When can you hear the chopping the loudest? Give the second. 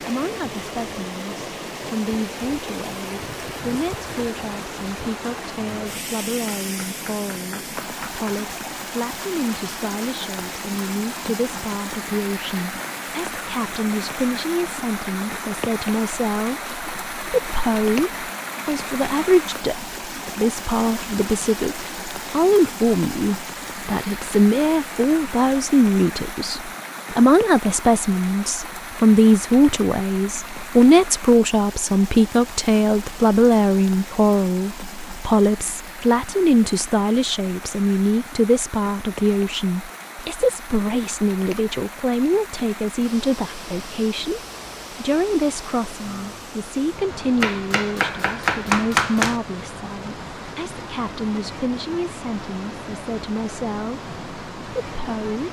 49 s.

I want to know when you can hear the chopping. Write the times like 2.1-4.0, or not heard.
6.6-8.4, 47.4-49.4.